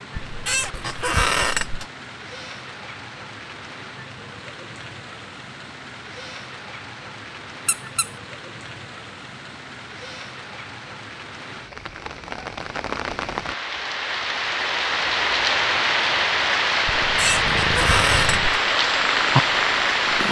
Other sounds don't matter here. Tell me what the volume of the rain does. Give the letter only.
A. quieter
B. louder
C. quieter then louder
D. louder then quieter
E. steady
B.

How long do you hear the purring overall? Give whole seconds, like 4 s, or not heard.
3 s.